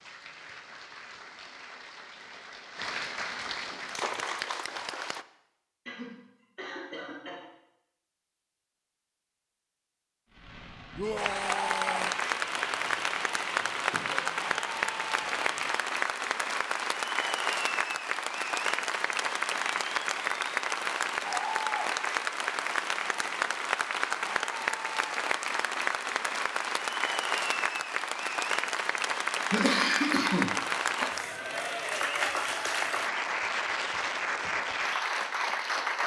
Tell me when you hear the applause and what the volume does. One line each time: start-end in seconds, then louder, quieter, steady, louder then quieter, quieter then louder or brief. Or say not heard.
0.0-5.2 louder
11.2-36.0 steady.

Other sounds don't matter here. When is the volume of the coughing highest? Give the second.
30 s.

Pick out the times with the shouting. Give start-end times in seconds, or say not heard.
10.9-12.2.